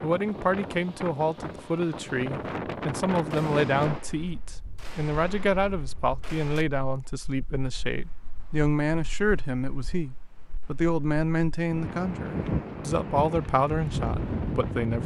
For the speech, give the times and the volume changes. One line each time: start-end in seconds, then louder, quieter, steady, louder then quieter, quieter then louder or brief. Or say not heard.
0.0-15.0 steady.